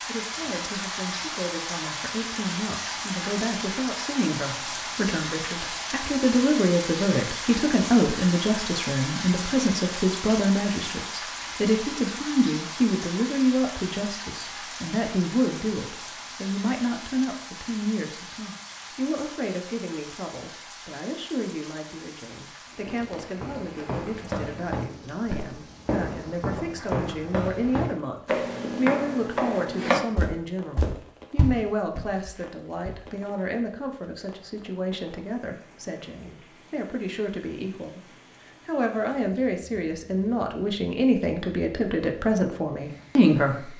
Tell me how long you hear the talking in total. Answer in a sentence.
You can hear the talking for 43 seconds altogether.